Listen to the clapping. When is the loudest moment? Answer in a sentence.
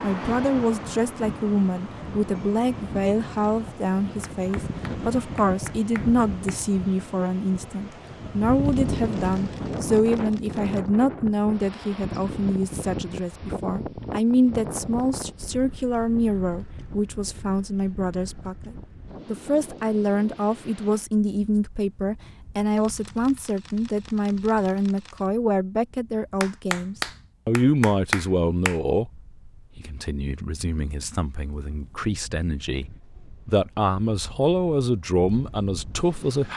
The loudest moment of the clapping is at 28 seconds.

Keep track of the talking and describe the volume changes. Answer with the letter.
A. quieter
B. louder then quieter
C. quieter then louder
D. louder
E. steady
E.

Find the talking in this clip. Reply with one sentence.
The talking can be heard from 0.0 to 36.5 s.